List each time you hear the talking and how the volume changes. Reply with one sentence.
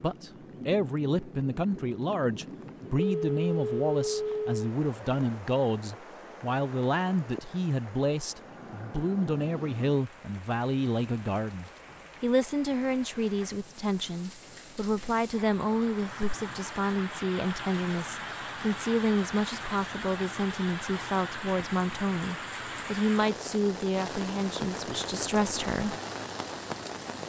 You can hear the talking from 0.0 to 25.9 s, at a steady volume.